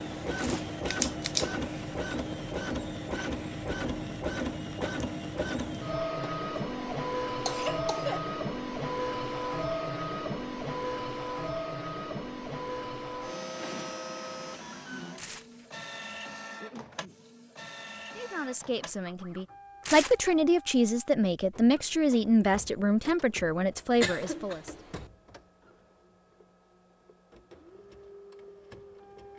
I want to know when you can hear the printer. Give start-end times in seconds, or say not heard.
0.0-29.3.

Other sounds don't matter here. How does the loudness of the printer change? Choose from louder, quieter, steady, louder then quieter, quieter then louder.
quieter.